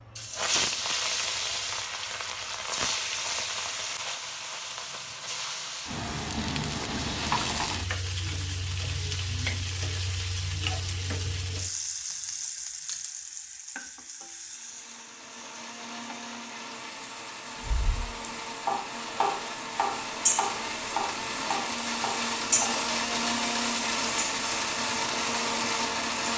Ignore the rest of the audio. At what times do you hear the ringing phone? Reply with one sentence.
The ringing phone can't be heard in this clip.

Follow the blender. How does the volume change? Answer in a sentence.
The volume of the blender goes up.